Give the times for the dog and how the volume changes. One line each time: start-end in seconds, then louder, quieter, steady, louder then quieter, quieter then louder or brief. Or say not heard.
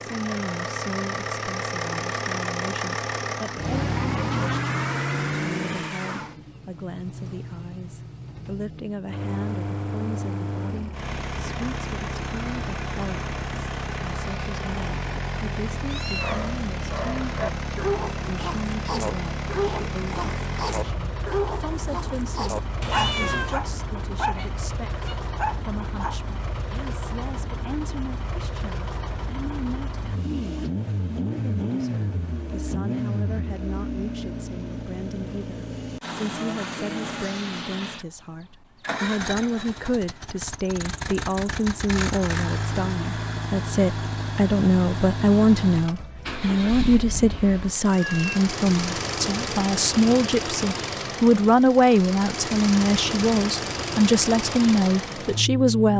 16.1-26.2 steady.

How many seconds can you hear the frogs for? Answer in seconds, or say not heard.
not heard.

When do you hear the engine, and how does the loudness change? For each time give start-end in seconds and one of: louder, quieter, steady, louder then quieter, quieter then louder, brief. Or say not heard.
0.0-55.9 steady.